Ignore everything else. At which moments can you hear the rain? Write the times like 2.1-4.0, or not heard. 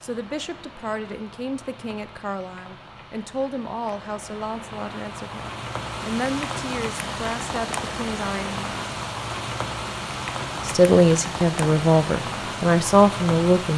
0.0-13.7.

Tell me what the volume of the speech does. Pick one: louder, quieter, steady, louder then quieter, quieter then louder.
louder.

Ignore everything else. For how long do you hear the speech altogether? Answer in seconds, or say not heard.
12 s.